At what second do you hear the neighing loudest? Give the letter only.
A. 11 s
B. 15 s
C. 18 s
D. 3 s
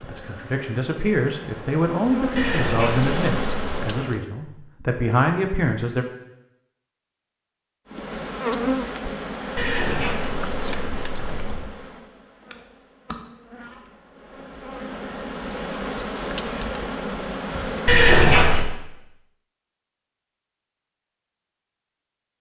C.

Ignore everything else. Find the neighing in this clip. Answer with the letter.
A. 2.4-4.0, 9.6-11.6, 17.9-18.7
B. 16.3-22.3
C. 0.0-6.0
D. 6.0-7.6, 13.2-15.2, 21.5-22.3
A.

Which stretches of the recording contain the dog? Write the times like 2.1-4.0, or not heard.
not heard.